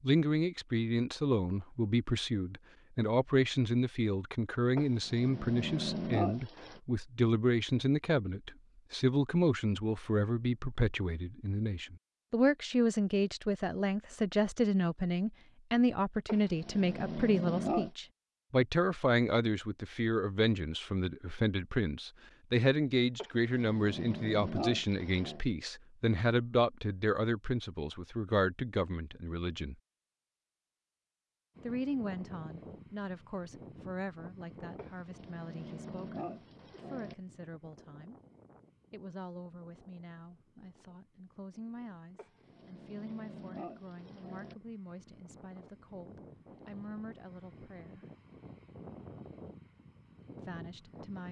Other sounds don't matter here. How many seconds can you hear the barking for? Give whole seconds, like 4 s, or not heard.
11 s.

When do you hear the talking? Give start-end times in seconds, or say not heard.
0.0-29.8, 31.6-38.1, 38.9-48.0, 50.4-51.2.